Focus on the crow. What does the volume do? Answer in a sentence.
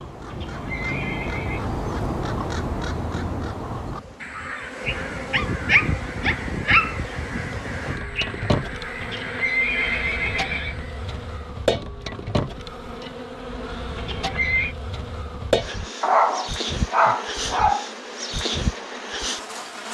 The loudness of the crow goes down.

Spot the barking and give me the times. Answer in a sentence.
The barking can be heard from 5.3 to 7.0 s and from 16.0 to 17.9 s.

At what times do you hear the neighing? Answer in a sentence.
The neighing can be heard from 0.2 to 1.6 s, from 9.0 to 10.8 s and from 13.9 to 14.8 s.